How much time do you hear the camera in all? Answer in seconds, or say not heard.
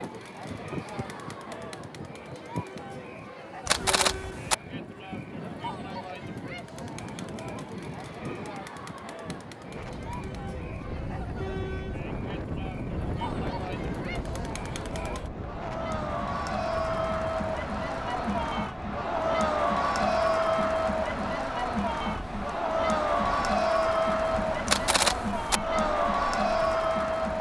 2 s.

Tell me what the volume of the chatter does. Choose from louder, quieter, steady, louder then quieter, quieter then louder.
louder.